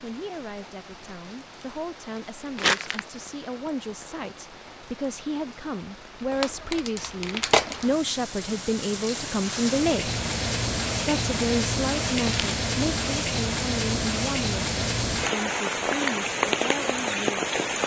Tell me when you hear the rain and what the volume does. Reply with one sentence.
You can hear the rain from 0.0 to 17.8 s, getting louder.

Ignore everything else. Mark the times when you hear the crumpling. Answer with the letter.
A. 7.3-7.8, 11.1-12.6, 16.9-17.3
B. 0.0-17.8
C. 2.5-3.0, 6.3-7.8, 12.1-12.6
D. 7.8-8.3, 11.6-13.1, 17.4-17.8
C.